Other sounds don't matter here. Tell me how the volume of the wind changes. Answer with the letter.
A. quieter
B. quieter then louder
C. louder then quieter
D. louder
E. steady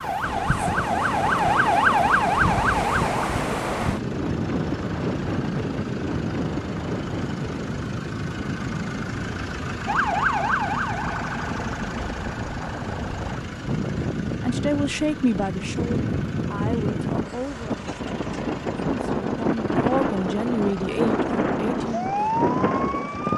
B.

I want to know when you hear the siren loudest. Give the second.
2 s.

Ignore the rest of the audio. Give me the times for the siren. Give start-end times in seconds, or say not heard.
0.0-3.3, 9.8-13.3, 21.9-23.3.